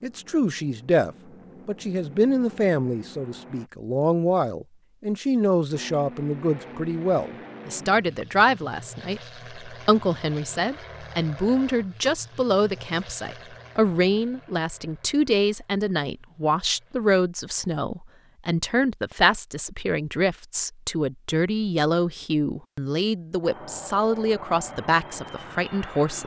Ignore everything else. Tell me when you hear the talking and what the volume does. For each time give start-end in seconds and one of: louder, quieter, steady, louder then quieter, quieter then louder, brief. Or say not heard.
0.0-26.2 steady.